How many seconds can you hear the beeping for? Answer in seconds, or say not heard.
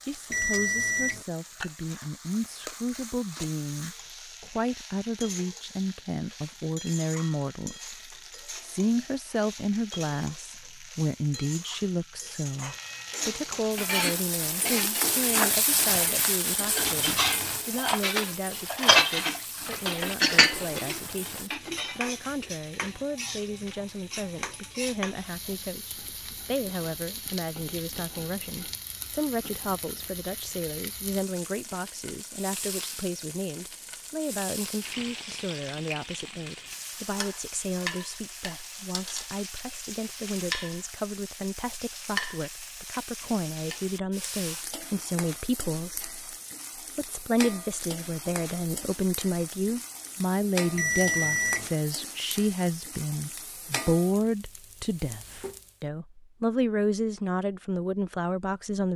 2 s.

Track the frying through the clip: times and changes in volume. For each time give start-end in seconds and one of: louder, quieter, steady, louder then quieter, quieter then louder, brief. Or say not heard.
0.0-55.8 louder then quieter.